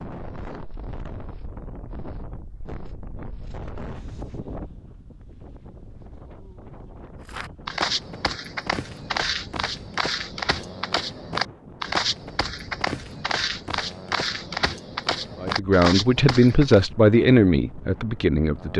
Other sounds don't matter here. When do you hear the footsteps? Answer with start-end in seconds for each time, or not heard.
7.2-16.9.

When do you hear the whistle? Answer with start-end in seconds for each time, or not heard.
not heard.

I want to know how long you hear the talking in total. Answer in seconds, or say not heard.
3 s.